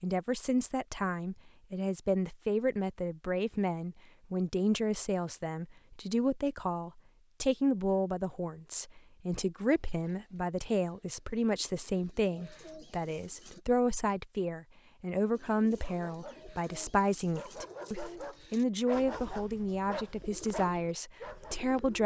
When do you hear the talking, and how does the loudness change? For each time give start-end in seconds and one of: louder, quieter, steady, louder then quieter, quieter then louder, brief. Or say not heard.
0.0-22.0 steady.